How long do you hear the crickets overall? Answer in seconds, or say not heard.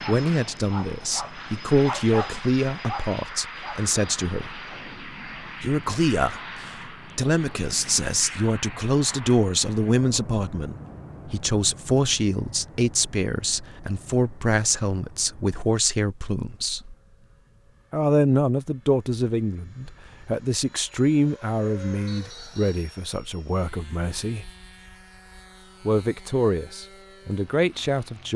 not heard.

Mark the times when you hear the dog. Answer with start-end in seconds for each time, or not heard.
0.0-3.9.